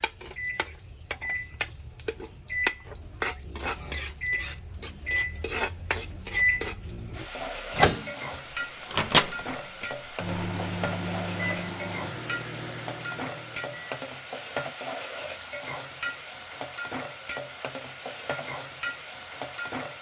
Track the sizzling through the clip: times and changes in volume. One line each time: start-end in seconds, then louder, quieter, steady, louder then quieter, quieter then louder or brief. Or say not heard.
0.0-19.9 steady.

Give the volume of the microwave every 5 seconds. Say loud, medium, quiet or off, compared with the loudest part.
medium, loud, medium, off.